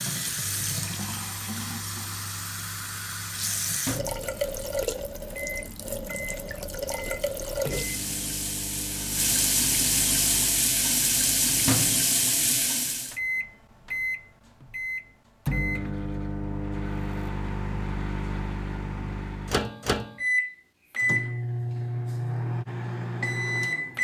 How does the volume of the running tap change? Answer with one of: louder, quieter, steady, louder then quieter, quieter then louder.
louder.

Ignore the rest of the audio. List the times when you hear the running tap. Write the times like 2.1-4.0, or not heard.
0.0-13.2.